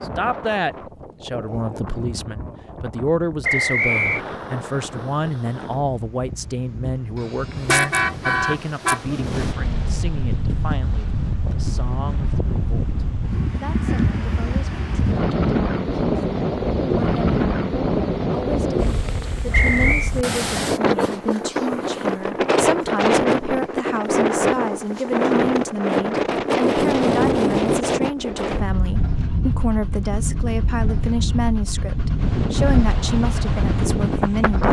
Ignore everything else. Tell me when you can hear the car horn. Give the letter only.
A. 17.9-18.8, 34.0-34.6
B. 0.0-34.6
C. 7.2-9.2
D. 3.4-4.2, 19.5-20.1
C.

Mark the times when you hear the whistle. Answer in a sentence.
You can hear the whistle from 3.4 to 4.2 s and from 19.5 to 20.1 s.